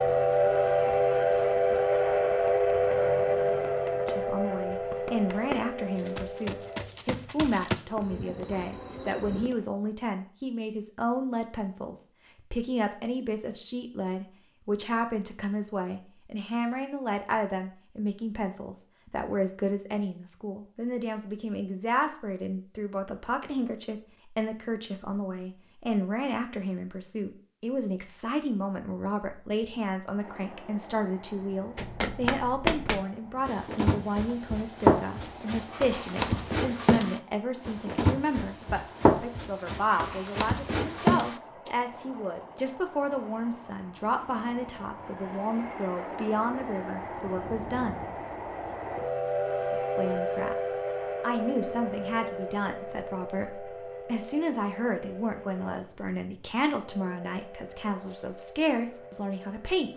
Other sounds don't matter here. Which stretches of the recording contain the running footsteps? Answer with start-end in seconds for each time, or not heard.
0.0-9.7, 31.8-41.7.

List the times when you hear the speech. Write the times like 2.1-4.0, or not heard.
4.0-48.0, 49.7-59.9.